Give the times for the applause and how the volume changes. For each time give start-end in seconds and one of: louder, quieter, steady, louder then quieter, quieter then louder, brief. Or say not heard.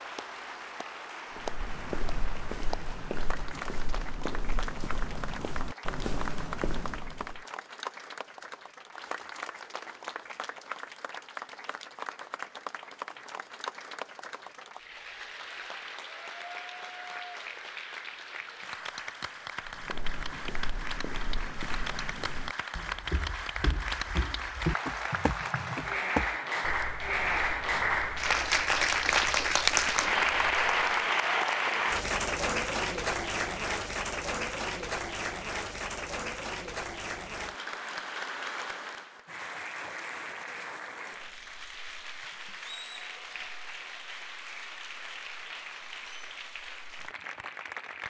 0.0-48.0 louder then quieter.